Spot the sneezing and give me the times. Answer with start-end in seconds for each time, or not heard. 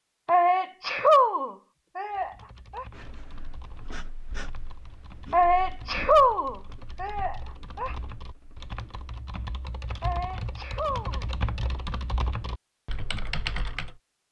0.2-2.9, 5.3-8.0, 10.0-11.2.